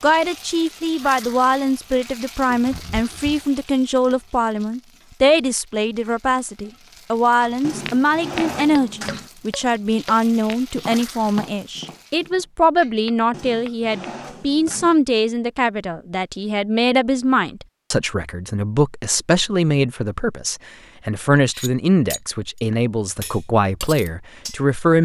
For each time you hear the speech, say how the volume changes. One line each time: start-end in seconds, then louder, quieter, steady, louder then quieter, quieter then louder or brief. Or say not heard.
0.0-24.9 steady.